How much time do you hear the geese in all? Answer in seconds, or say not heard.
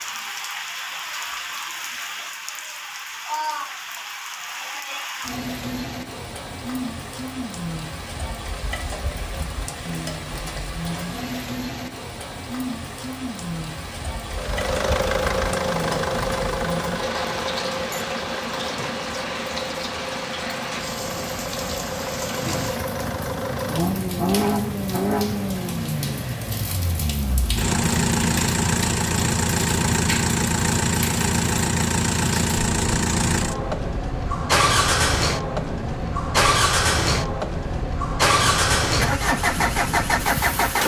not heard.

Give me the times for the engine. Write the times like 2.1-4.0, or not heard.
14.3-40.8.